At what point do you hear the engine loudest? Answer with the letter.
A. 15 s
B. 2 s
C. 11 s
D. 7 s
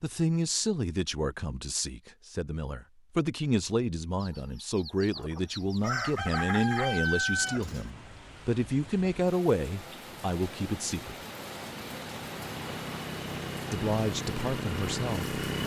A.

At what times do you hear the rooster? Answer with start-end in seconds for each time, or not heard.
4.2-7.9.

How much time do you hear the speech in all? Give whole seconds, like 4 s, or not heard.
13 s.